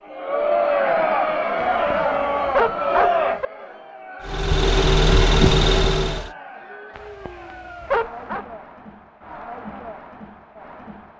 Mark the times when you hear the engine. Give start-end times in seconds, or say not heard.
4.2-6.3.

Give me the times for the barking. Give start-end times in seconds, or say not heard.
1.6-3.5, 7.0-8.4.